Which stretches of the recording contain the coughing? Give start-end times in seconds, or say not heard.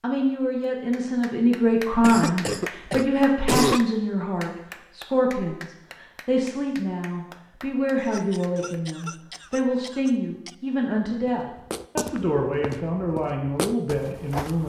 2.0-3.8, 8.1-10.6.